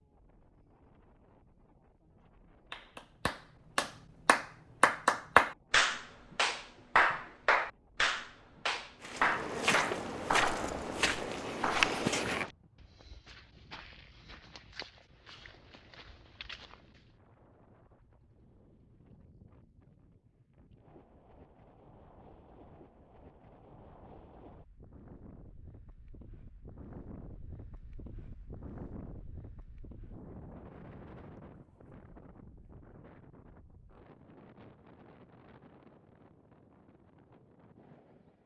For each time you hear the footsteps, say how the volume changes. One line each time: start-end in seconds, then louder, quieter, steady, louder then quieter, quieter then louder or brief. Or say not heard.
9.0-17.1 quieter.